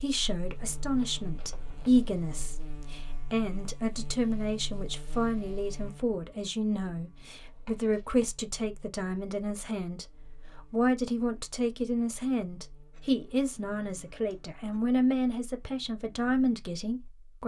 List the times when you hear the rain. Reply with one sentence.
You can't hear the rain here.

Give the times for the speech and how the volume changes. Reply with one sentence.
The speech can be heard from 0.0 to 17.4 s, at a steady volume.